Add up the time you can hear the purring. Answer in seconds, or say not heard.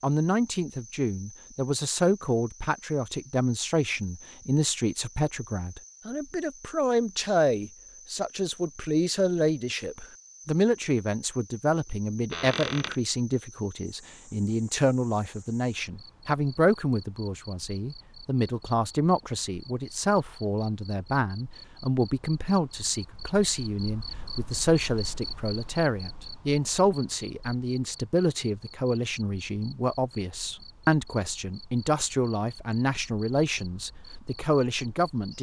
not heard.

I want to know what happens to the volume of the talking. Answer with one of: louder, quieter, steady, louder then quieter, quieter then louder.
steady.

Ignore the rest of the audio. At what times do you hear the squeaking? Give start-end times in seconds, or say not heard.
12.3-12.9.